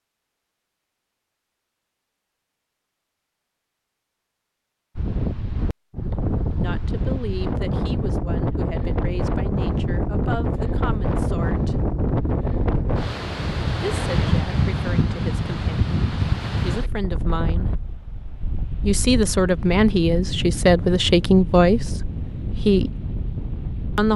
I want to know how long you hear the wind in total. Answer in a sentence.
You can hear the wind for 19 seconds altogether.